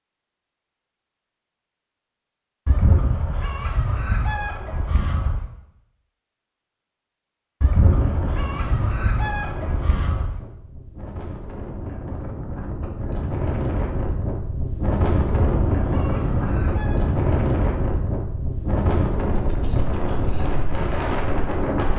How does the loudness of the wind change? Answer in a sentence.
The loudness of the wind goes up.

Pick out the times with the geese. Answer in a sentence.
You can hear the geese from 2.6 to 5.5 s, from 7.6 to 10.4 s and from 15.2 to 17.0 s.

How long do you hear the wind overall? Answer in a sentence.
You can hear the wind for 14 seconds altogether.